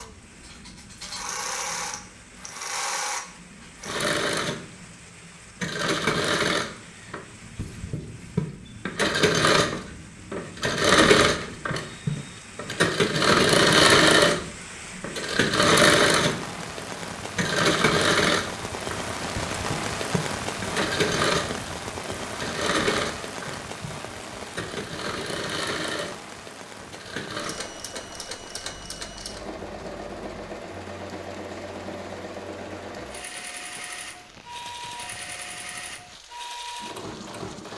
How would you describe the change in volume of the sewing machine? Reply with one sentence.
The loudness of the sewing machine goes up, then down.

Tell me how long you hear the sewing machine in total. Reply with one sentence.
You can hear the sewing machine for 38 seconds altogether.